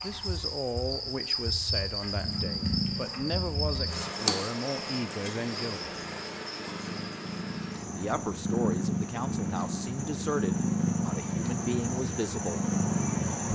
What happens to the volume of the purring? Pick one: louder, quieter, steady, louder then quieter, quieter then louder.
quieter then louder.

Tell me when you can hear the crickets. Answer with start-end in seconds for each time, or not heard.
0.0-13.5.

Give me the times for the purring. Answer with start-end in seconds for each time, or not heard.
2.1-13.5.